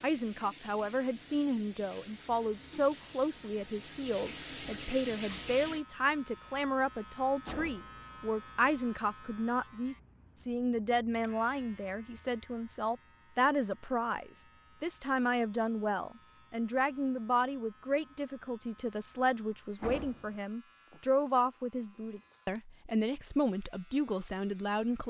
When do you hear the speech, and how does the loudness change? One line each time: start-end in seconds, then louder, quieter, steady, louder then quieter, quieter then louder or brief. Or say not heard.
0.0-25.0 steady.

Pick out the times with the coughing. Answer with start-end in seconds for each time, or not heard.
not heard.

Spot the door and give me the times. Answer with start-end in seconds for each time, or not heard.
7.4-8.1, 19.8-20.4.